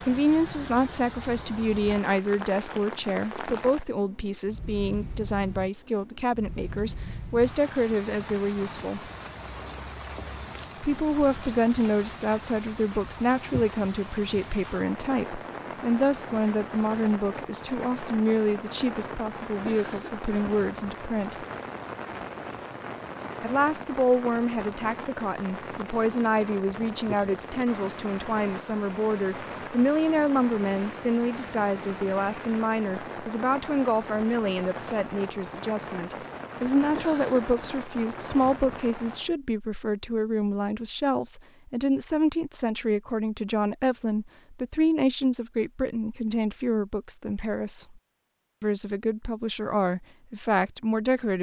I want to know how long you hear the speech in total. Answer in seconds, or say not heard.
47 s.